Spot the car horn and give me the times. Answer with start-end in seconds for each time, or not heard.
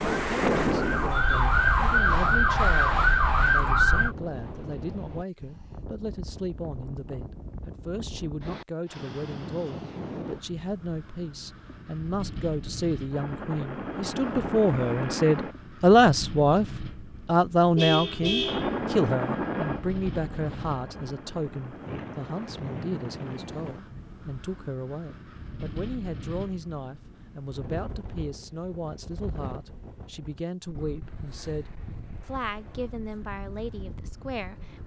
17.8-18.7.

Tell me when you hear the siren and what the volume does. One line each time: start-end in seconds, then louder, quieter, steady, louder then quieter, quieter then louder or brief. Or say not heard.
0.0-4.2 louder.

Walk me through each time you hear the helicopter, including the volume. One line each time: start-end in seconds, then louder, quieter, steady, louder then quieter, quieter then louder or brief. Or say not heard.
13.1-15.6 brief
18.4-22.6 quieter.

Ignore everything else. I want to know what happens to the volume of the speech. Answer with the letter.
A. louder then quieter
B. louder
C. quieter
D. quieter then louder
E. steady
A.